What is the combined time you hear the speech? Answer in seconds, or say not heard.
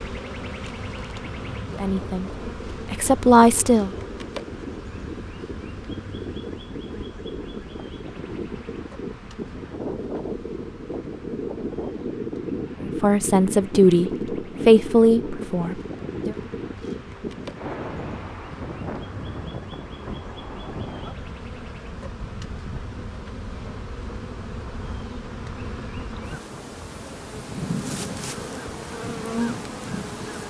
6 s.